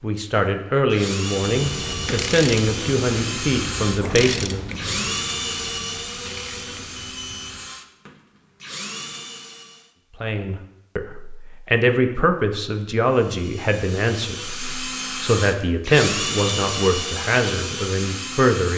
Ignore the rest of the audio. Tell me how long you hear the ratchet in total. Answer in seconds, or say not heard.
6 s.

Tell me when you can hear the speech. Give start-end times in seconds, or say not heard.
0.0-4.7, 10.2-18.7.